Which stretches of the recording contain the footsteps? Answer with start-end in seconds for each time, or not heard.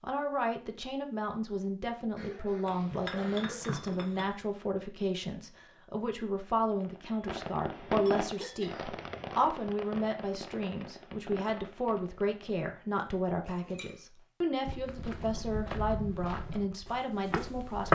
14.7-17.8.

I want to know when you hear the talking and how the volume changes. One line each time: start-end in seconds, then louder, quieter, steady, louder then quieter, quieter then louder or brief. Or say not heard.
0.0-17.8 steady.